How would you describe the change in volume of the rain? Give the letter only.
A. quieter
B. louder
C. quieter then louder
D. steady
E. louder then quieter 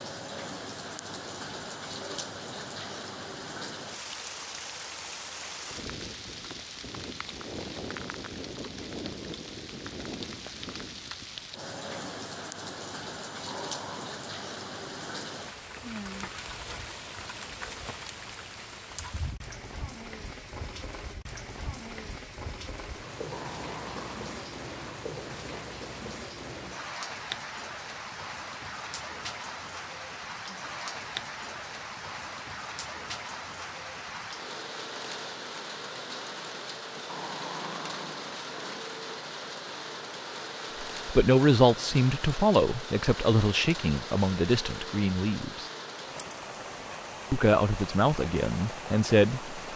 D.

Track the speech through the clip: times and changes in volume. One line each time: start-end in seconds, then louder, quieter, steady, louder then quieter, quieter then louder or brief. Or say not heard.
41.0-45.7 quieter
47.3-49.5 brief.